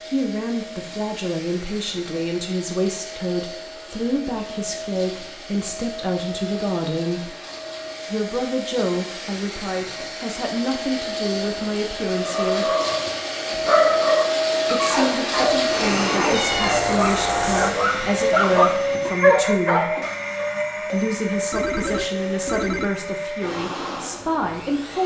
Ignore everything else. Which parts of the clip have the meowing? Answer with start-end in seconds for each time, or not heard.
16.2-16.9.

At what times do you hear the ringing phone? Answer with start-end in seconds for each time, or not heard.
21.5-22.9.